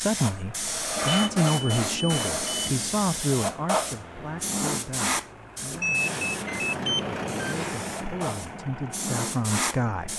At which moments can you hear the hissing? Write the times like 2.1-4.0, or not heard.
0.0-10.1.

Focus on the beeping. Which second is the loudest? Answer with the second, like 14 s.
6 s.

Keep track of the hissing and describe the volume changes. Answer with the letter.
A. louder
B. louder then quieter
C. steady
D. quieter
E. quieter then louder
E.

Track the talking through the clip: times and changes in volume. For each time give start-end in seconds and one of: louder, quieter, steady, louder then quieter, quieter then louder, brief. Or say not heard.
0.0-10.1 quieter then louder.